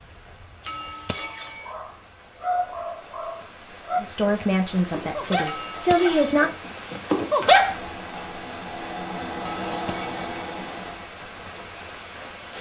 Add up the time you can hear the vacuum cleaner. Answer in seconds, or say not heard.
4 s.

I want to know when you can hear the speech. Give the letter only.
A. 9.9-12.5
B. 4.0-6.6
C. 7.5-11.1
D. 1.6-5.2
B.